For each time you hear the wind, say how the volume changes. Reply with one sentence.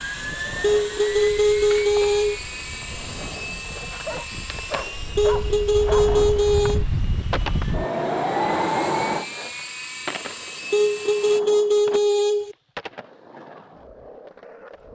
You can hear the wind from 0.0 to 9.2 s, getting louder.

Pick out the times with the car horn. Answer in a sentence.
You can hear the car horn from 0.6 to 2.4 s, from 5.2 to 6.8 s and from 10.7 to 12.6 s.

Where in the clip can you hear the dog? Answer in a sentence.
The dog can be heard from 4.0 to 6.2 s.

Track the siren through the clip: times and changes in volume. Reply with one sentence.
The siren can't be heard in this clip.